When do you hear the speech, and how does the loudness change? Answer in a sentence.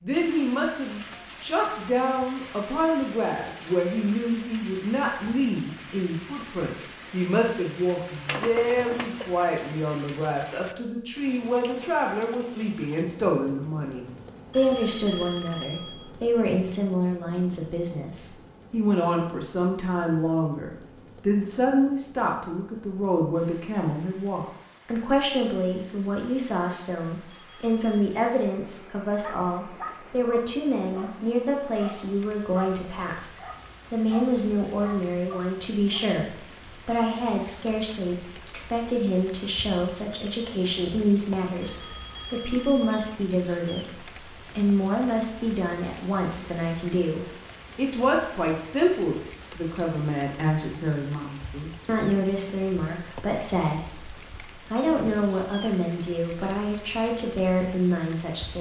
The speech can be heard from 0.0 to 58.5 s, at a steady volume.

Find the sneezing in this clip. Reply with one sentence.
You can hear the sneezing from 8.2 to 9.2 s.